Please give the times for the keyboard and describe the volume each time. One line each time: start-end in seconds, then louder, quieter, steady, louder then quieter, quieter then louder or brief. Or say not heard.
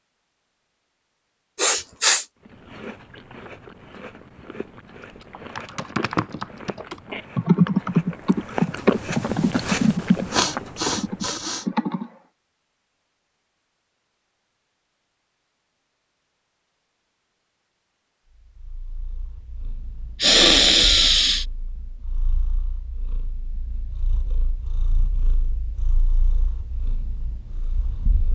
5.0-12.1 louder then quieter.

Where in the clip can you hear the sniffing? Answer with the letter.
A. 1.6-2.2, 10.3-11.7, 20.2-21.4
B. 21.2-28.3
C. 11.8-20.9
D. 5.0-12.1
A.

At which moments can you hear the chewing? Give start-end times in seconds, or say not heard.
2.4-11.4.